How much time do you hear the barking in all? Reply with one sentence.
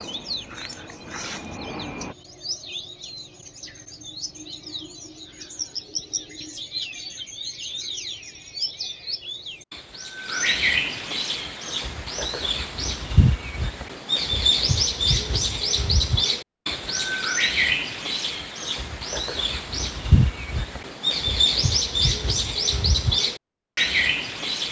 You can't hear the barking here.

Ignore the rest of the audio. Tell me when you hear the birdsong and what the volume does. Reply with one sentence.
The birdsong can be heard from 0.0 to 24.6 s, getting louder.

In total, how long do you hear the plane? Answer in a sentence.
You can hear the plane for 2 seconds altogether.